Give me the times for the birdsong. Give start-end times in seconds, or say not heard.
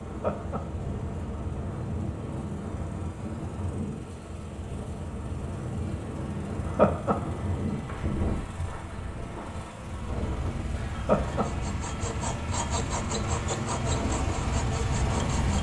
not heard.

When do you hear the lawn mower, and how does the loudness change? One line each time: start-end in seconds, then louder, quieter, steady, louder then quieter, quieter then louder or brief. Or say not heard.
0.0-15.5 louder.